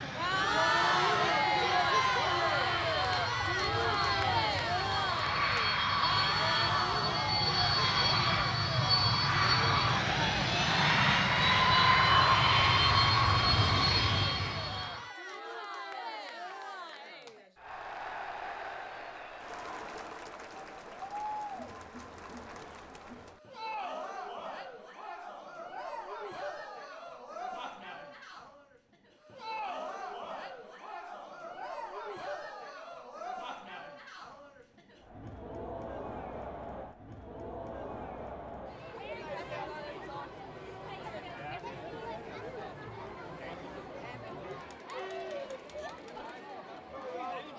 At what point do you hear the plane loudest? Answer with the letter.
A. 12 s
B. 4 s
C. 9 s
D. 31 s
A.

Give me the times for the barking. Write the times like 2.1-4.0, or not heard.
not heard.